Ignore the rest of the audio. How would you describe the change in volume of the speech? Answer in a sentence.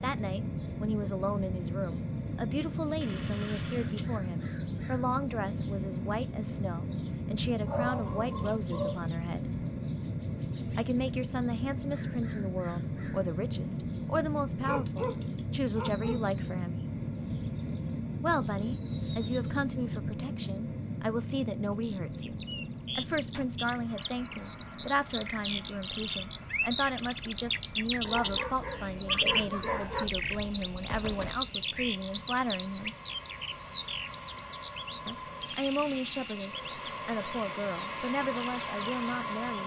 The loudness of the speech stays about the same.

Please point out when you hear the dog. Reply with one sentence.
You can hear the dog from 7.5 to 9.1 s, from 14.6 to 16.1 s and from 28.1 to 30.1 s.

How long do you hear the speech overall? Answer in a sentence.
You can hear the speech for 35 seconds altogether.